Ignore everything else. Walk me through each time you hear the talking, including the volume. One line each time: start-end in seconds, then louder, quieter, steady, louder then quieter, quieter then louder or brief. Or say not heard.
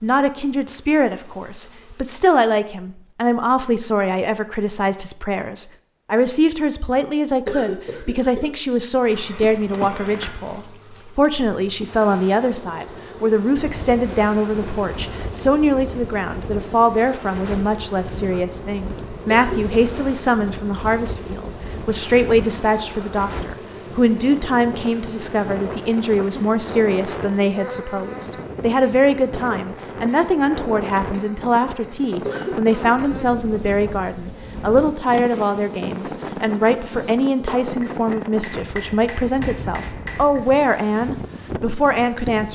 0.0-42.5 steady.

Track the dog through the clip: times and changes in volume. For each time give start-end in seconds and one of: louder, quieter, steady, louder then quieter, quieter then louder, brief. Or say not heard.
not heard.